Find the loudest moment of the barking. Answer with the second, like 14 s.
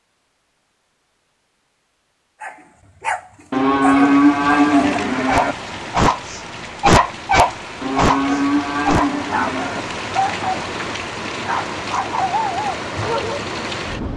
7 s.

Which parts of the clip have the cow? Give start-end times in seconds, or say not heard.
3.5-5.5, 7.8-9.8.